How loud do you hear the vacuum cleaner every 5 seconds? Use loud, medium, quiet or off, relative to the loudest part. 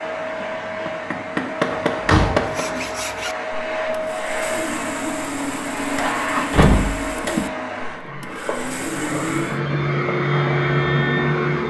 medium, medium, loud.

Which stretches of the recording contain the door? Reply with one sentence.
The door can be heard from 1.7 to 2.5 s and from 6.0 to 7.5 s.